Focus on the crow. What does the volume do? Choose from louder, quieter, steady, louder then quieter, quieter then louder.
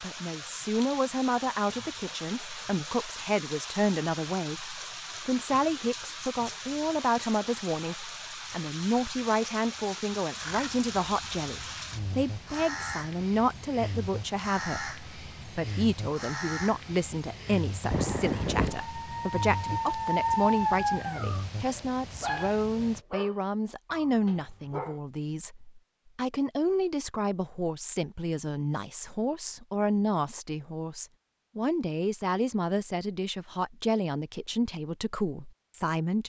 louder.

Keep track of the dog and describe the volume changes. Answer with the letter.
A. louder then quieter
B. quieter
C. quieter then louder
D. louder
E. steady
B.